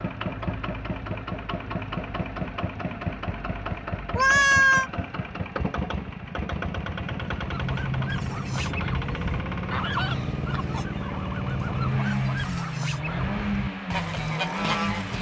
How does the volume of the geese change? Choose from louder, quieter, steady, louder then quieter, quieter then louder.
steady.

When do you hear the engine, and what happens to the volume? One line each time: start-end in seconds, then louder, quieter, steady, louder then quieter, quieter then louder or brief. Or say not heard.
0.0-15.1 steady.